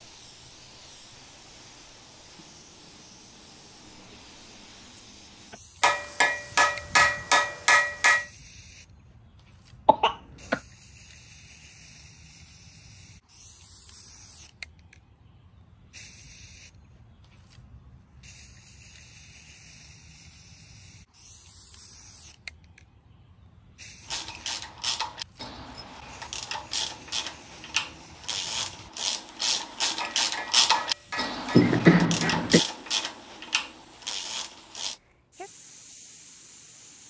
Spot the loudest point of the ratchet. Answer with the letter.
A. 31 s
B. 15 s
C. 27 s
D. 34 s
A.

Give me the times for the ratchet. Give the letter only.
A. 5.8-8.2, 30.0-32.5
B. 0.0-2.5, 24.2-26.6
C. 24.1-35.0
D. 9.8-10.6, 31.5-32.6
C.